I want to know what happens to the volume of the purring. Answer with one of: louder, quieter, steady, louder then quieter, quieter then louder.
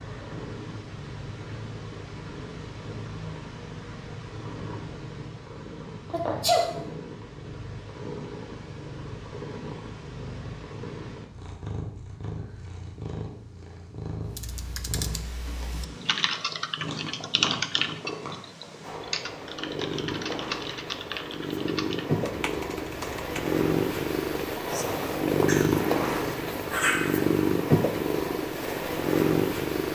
louder.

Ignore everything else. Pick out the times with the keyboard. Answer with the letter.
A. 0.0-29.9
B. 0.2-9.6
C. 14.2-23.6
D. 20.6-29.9
C.